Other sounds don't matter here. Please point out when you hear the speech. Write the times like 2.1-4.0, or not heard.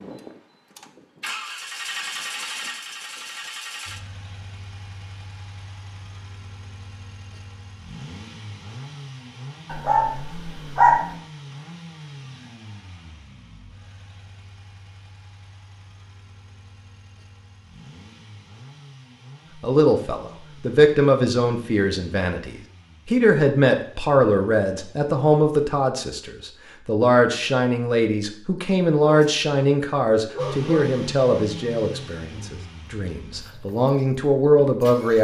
19.6-35.1.